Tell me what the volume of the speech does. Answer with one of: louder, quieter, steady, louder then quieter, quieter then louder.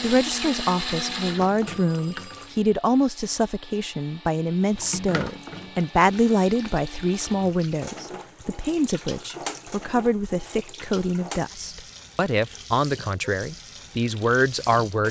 steady.